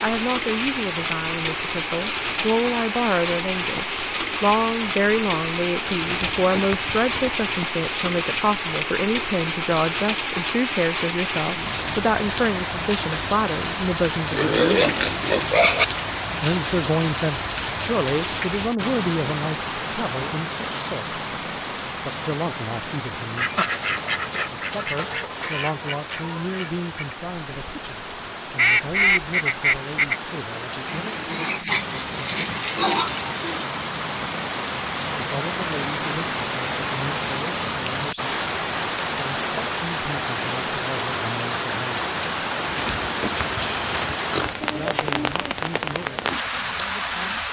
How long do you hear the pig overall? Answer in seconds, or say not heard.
8 s.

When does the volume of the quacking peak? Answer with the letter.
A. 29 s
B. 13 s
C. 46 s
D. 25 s
A.